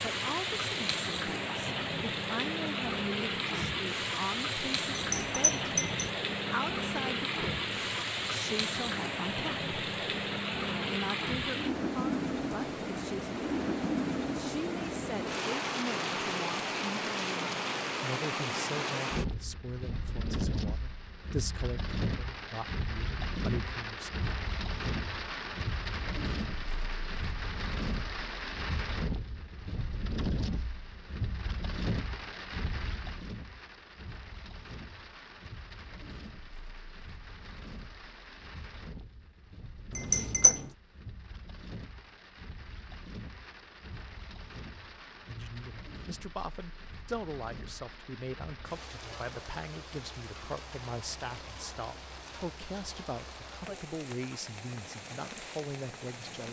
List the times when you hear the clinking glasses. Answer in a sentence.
You can hear the clinking glasses from 5.0 to 6.1 s and from 40.0 to 40.6 s.